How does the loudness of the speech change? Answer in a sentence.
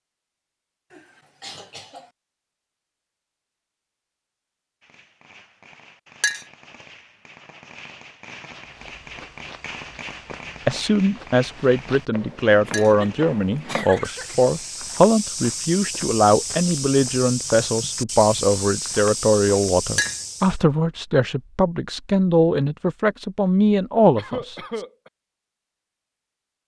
The volume of the speech stays about the same.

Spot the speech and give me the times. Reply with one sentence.
The speech can be heard from 10.7 to 24.8 s.